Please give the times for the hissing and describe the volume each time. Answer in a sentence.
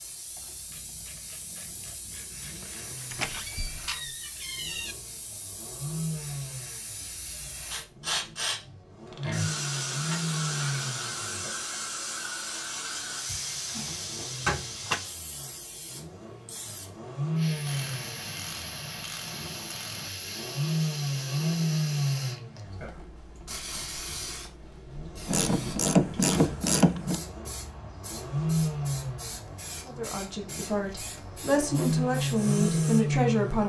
The hissing can be heard from 0.0 to 33.6 s, getting louder then quieter.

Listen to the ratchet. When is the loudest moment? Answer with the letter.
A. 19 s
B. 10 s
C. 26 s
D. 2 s
C.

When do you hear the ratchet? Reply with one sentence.
The ratchet can be heard from 0.7 to 3.3 s, from 9.1 to 11.7 s, from 17.6 to 20.1 s and from 25.2 to 27.2 s.